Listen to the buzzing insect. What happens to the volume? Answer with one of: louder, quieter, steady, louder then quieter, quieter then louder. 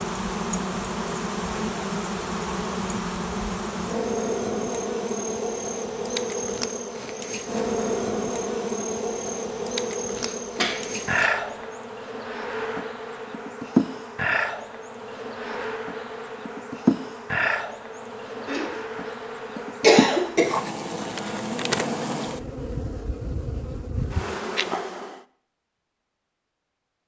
steady.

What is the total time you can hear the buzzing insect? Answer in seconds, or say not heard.
25 s.